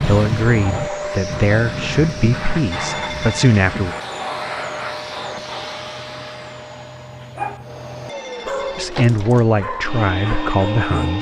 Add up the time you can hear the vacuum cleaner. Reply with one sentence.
You can hear the vacuum cleaner for 11 seconds altogether.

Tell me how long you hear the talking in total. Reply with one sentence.
The talking can be heard for 6 seconds in total.